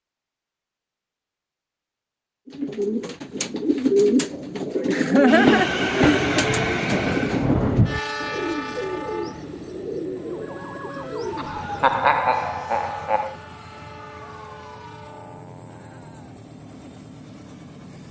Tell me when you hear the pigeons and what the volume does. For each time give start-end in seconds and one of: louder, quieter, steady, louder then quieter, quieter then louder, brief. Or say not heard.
2.5-12.0 quieter.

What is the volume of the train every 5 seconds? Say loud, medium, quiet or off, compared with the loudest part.
off, loud, quiet, quiet.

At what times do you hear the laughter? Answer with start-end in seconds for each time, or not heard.
4.8-6.2, 11.3-13.3.